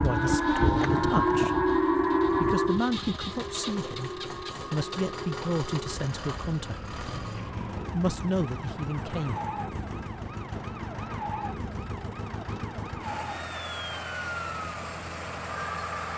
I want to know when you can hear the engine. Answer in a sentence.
You can hear the engine from 0.0 to 16.1 s.